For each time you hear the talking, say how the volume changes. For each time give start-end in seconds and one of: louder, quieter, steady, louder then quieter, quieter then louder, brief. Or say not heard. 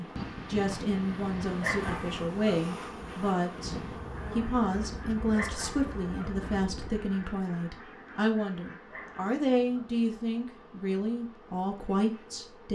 0.0-12.7 steady.